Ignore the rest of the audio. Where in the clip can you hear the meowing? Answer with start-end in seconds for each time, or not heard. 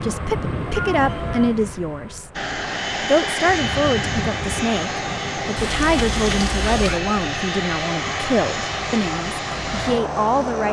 0.7-1.6, 5.5-7.0.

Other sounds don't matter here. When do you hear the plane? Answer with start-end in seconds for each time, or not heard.
0.0-10.6.